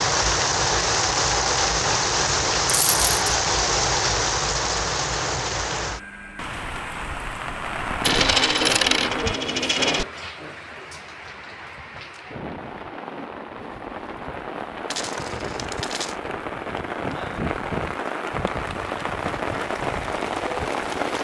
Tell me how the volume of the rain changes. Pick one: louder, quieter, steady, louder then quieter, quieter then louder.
quieter then louder.